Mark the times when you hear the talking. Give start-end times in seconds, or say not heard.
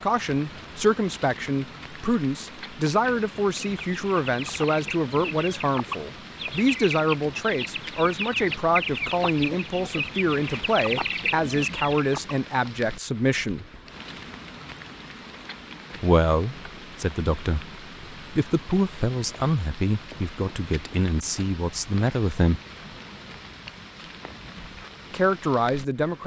0.0-13.7, 16.0-22.6, 25.1-26.2.